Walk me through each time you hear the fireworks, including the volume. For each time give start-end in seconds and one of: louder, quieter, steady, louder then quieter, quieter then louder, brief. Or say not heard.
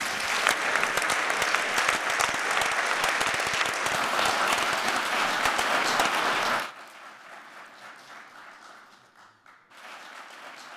0.0-6.6 steady.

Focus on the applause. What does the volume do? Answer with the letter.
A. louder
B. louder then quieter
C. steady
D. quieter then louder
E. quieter
E.